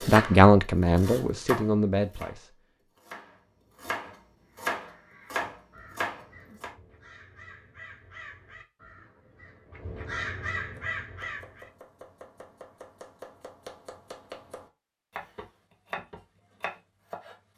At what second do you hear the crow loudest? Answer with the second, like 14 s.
10 s.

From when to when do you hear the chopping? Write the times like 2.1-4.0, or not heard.
0.0-6.7, 10.6-17.4.